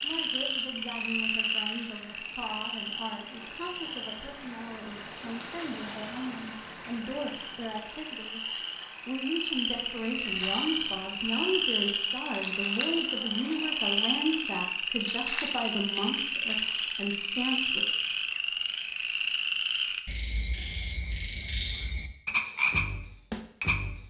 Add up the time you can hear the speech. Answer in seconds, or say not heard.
18 s.